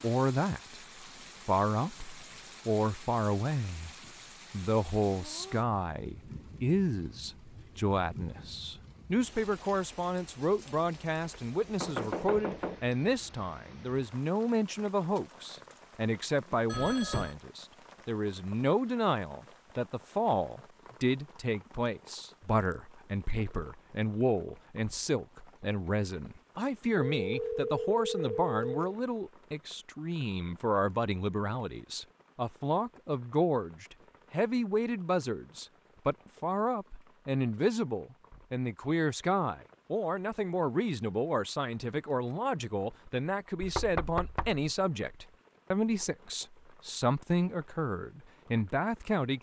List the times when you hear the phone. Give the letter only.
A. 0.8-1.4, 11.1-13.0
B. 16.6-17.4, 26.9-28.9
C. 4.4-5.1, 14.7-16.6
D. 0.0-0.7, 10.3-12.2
B.